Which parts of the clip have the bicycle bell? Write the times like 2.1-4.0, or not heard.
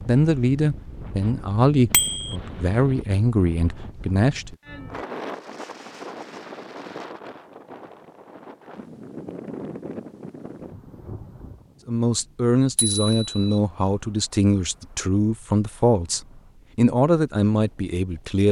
1.9-2.4, 12.8-13.6.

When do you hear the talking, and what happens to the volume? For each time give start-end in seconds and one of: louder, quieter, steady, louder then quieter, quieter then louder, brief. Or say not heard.
0.1-4.5 quieter then louder
11.8-18.4 steady.